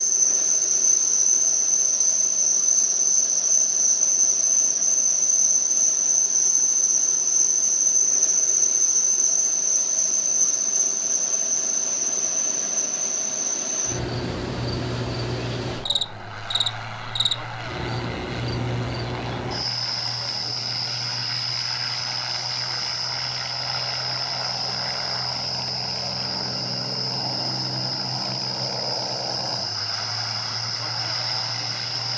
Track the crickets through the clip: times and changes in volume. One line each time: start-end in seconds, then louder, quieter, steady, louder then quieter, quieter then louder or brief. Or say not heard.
0.0-32.1 quieter.